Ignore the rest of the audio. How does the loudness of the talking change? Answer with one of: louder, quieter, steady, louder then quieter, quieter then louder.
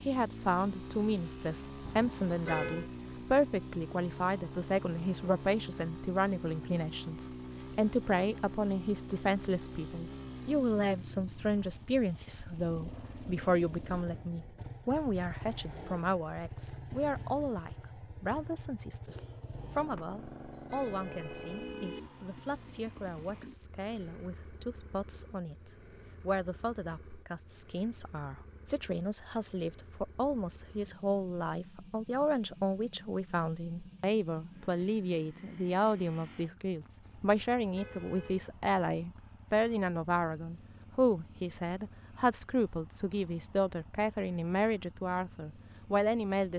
quieter then louder.